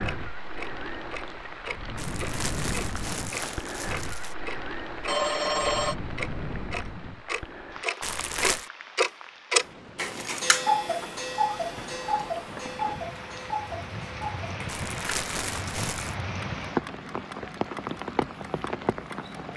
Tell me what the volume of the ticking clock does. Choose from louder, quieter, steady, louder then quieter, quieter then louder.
louder then quieter.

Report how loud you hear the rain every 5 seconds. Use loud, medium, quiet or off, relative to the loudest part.
loud, medium, medium, loud.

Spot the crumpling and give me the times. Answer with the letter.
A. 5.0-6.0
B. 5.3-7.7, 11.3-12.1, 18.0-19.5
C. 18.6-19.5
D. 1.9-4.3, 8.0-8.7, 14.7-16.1
D.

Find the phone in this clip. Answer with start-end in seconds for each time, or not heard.
5.0-6.0.